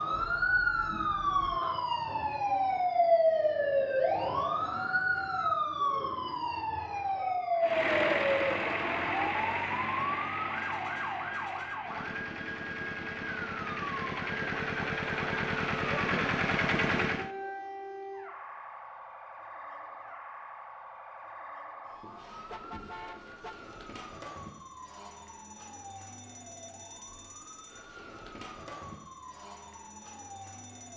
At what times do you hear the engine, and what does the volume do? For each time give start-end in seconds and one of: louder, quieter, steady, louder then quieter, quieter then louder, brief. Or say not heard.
7.6-17.3 quieter then louder.